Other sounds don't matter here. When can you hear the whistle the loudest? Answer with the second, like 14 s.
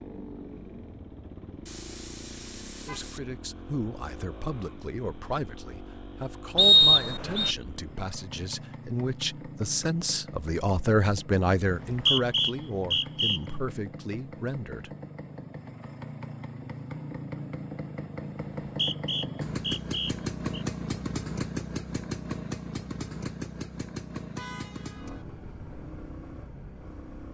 7 s.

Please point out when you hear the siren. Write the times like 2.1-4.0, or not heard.
not heard.